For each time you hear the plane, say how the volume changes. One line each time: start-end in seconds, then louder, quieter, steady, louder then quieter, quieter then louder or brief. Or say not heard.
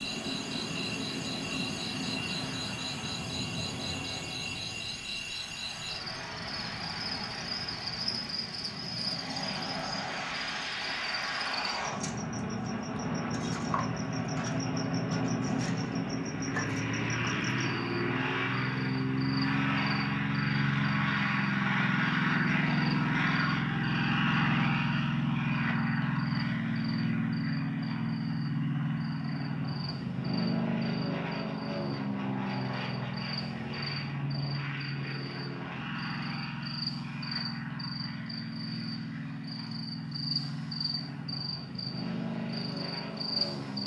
0.0-43.8 louder then quieter.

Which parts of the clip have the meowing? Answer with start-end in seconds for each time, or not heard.
not heard.